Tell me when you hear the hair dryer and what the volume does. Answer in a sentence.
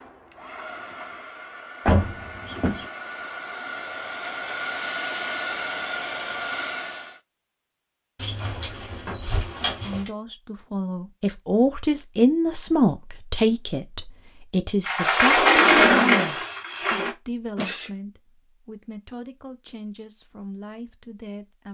The hair dryer can be heard from 0.0 to 7.2 s, getting louder.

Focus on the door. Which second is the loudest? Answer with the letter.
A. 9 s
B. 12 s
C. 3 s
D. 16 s
D.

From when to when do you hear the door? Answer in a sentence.
The door can be heard from 1.9 to 2.9 s, from 8.2 to 10.1 s and from 14.8 to 17.1 s.